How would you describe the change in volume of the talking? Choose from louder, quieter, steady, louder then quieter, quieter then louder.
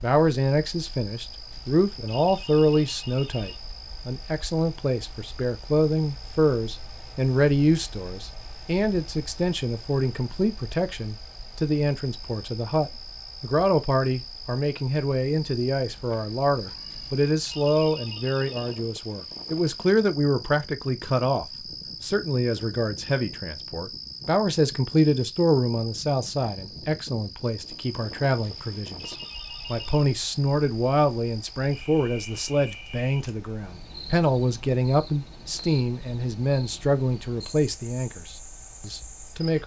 steady.